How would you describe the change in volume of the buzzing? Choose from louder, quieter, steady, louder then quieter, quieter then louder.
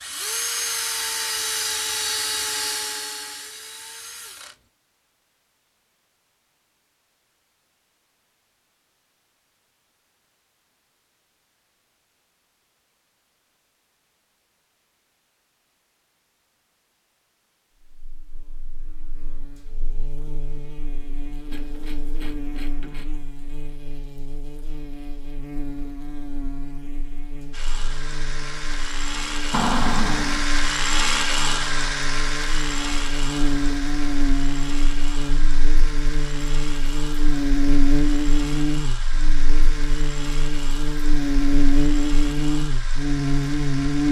louder.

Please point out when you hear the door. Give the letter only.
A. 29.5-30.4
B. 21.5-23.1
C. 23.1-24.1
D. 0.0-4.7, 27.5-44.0
A.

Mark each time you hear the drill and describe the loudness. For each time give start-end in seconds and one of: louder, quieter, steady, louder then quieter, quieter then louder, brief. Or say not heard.
0.0-4.7 quieter
27.5-44.0 quieter.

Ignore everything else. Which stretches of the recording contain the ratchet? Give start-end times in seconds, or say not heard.
21.5-23.1.